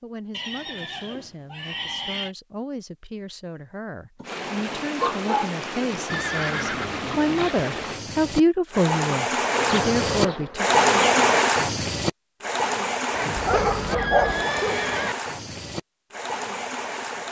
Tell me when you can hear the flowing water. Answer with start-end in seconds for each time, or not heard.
4.2-17.2.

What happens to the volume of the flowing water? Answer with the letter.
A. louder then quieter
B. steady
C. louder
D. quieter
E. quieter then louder
A.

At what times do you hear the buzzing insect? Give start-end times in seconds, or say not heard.
9.5-11.4.